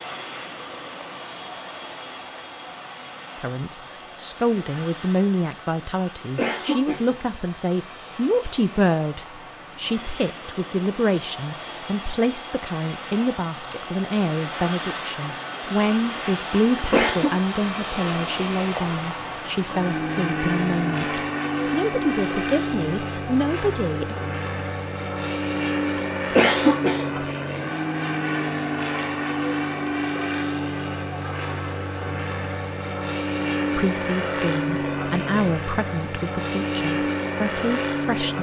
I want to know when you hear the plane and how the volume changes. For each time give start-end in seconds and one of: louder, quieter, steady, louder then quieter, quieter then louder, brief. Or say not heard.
0.0-38.3 louder.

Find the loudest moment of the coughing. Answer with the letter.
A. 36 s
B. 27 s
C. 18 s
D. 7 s
B.